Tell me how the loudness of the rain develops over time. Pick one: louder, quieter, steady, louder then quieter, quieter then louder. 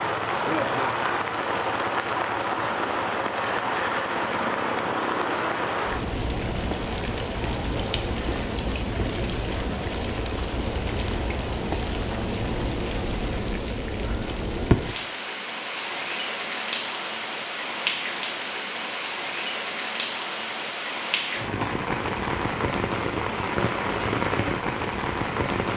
steady.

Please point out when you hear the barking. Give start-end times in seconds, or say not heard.
not heard.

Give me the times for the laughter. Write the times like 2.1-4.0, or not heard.
0.5-1.2.